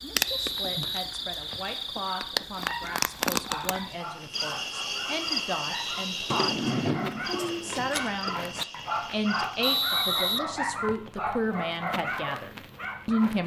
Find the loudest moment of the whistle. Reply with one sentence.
The loudest moment of the whistle is at 10 seconds.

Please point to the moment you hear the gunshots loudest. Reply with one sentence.
The loudest moment of the gunshots is at 7 seconds.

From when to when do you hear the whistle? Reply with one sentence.
The whistle can be heard from 0.2 to 1.8 s, from 5.8 to 6.5 s and from 9.6 to 11.1 s.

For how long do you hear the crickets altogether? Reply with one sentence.
The crickets can be heard for 10 seconds in total.